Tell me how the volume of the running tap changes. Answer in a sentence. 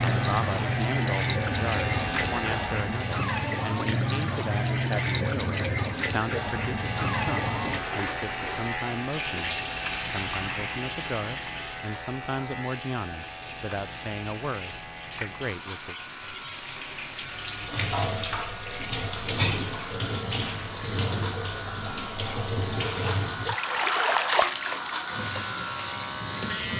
The volume of the running tap goes down, then up.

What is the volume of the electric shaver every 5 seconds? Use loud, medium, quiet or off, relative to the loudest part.
loud, loud, medium, medium, loud, loud.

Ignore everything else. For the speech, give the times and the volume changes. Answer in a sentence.
You can hear the speech from 0.1 to 15.9 s, at a steady volume.